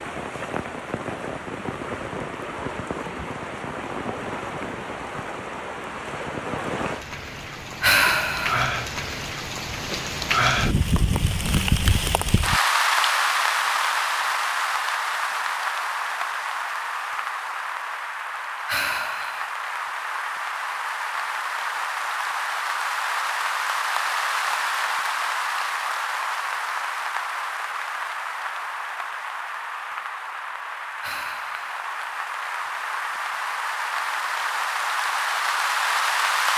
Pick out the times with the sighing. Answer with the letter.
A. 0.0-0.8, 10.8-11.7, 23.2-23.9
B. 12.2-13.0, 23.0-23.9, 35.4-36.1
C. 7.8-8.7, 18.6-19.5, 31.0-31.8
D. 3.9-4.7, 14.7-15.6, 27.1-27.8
C.